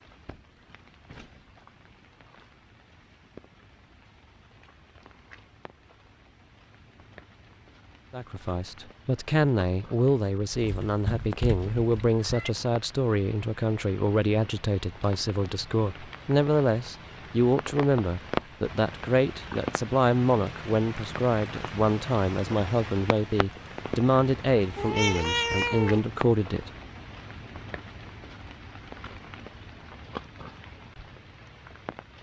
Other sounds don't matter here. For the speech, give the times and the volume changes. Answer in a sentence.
The speech can be heard from 8.1 to 26.7 s, at a steady volume.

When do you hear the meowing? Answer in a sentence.
You can hear the meowing from 10.5 to 12.5 s and from 24.8 to 26.0 s.